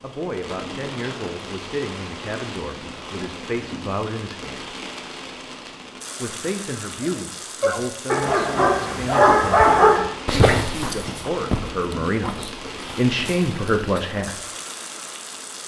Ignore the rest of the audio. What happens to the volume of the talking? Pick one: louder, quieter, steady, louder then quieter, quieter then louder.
louder.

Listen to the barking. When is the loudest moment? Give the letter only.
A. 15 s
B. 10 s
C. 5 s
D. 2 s
B.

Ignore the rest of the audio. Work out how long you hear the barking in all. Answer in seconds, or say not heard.
7 s.